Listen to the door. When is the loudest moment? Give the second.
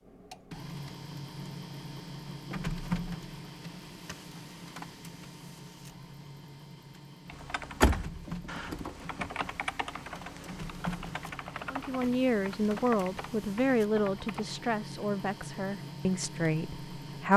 8 s.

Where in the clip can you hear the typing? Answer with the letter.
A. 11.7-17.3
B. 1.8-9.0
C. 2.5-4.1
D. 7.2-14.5
D.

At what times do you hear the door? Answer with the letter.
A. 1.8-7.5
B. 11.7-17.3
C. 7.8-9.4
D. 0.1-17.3
C.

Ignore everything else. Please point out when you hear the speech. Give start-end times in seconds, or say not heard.
11.7-17.3.